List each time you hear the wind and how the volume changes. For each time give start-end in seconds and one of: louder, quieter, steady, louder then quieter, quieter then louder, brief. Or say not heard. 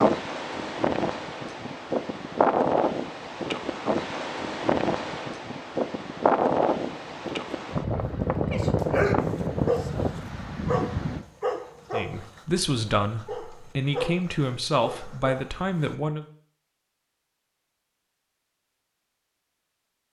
0.0-11.2 steady.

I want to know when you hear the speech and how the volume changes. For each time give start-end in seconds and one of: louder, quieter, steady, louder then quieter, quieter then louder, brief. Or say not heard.
11.9-16.2 quieter then louder.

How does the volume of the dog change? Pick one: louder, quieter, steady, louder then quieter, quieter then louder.
quieter.